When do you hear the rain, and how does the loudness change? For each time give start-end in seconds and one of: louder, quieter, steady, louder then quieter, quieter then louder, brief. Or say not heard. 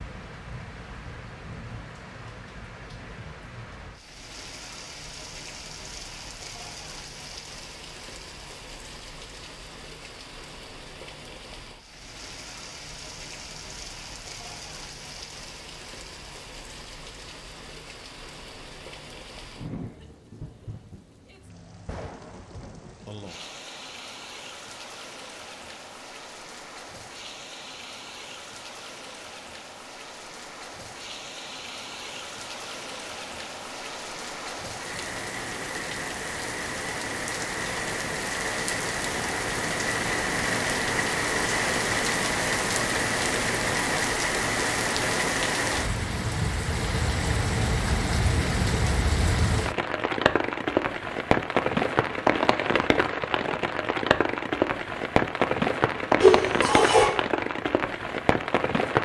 0.0-58.9 louder.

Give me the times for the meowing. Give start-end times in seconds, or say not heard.
56.2-57.1.